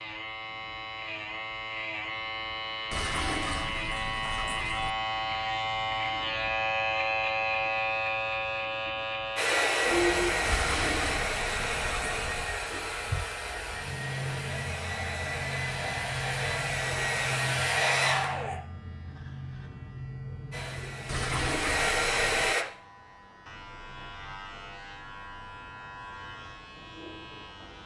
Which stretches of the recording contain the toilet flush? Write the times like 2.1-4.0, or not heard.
2.9-4.9, 10.4-12.4, 21.1-22.6.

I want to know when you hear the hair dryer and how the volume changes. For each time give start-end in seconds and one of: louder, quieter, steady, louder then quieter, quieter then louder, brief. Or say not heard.
9.3-18.6 quieter then louder
20.5-22.6 brief.